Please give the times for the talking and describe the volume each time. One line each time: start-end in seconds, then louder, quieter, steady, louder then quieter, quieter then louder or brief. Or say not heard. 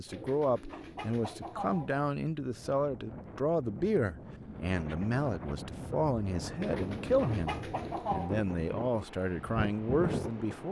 0.0-10.6 steady.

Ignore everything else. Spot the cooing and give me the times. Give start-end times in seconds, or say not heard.
0.1-2.0, 6.6-8.3.